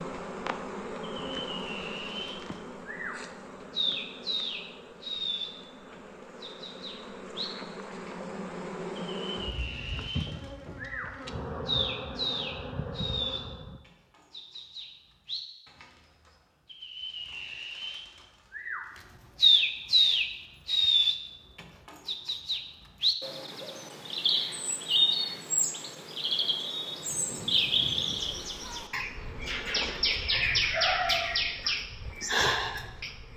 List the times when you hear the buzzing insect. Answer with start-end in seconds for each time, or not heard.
0.0-13.8, 26.9-33.3.